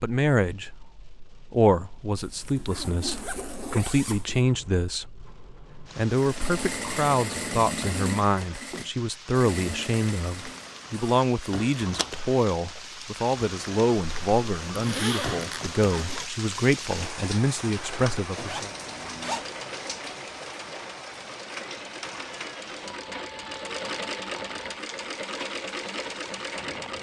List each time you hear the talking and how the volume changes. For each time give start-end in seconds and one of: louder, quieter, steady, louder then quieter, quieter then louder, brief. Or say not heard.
0.0-18.7 steady.